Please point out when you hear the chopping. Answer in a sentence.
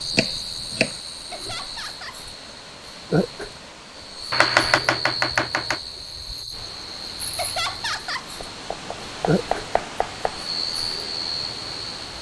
You can hear the chopping from 0.1 to 0.9 s, from 4.3 to 5.8 s and from 8.4 to 10.3 s.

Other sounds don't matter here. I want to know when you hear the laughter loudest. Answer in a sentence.
The volume of the laughter peaks at 8 seconds.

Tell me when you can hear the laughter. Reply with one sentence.
The laughter can be heard from 1.3 to 2.2 s and from 7.3 to 8.3 s.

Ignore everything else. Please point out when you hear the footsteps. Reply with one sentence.
You can't hear the footsteps here.